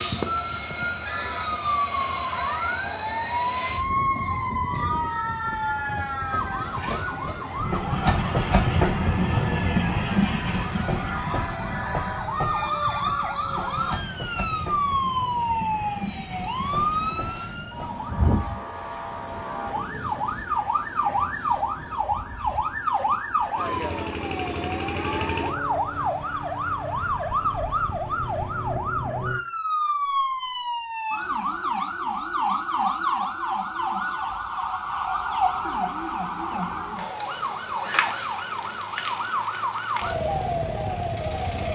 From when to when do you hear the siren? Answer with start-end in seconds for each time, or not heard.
0.0-41.6.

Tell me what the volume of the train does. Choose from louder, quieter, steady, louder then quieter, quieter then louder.
louder then quieter.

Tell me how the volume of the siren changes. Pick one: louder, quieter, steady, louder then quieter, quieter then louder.
steady.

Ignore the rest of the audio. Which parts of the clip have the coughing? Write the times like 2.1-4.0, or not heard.
not heard.